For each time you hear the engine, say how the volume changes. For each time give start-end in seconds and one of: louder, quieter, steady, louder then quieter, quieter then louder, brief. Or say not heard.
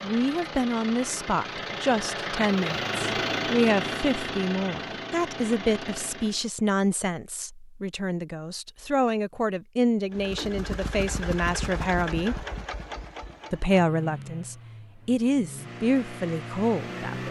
0.0-6.5 louder then quieter
10.1-17.2 quieter then louder.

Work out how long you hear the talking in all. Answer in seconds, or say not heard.
16 s.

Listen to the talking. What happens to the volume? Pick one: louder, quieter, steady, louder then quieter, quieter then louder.
steady.